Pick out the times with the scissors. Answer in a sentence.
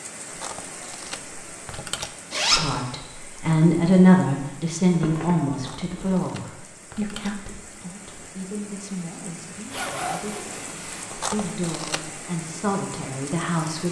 You can hear the scissors from 0.3 to 2.1 s, from 5.5 to 7.4 s and from 11.1 to 12.2 s.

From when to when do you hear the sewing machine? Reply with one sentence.
The sewing machine can't be heard in this clip.